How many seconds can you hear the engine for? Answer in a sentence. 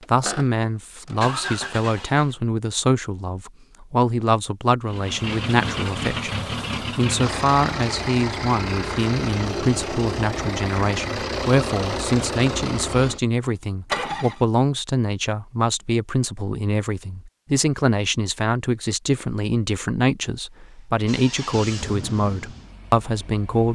The engine can be heard for 15 seconds in total.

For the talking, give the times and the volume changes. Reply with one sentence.
You can hear the talking from 0.1 to 23.7 s, at a steady volume.